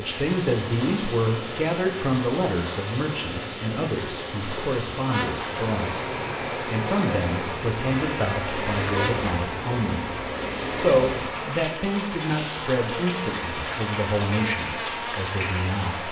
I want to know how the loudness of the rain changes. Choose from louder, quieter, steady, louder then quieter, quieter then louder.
steady.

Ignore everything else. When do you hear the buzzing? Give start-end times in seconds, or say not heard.
5.0-16.0.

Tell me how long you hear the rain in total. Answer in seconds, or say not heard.
16 s.